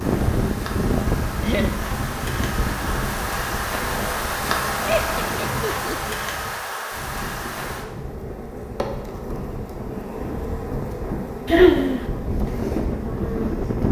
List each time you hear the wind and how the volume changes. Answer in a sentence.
The wind can be heard from 0.0 to 13.8 s, getting quieter then louder.